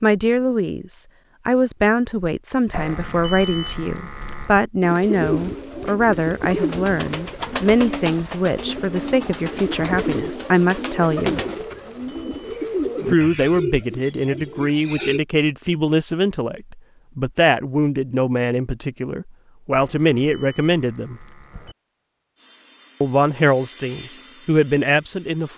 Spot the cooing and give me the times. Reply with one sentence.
The cooing can be heard from 4.8 to 15.2 s.